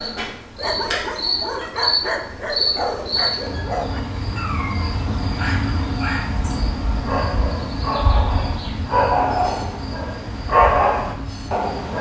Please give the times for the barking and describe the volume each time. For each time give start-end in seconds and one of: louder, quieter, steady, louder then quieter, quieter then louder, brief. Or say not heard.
0.6-11.9 louder.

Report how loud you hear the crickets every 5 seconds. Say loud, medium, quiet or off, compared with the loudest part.
loud, loud, medium.